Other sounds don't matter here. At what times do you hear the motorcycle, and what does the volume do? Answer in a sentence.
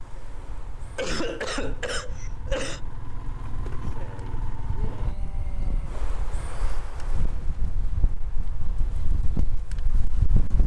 You can hear the motorcycle from 0.0 to 5.2 s, getting louder.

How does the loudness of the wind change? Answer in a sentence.
The loudness of the wind goes up.